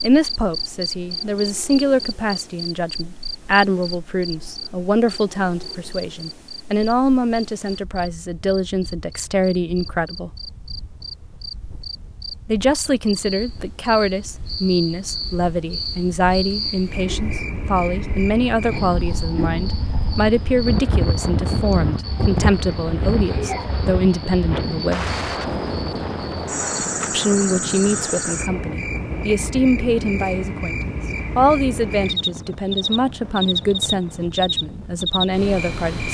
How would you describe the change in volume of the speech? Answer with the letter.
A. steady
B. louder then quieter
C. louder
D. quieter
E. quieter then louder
A.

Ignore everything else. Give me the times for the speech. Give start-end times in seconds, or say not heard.
0.0-10.3, 12.4-25.1, 27.1-36.0.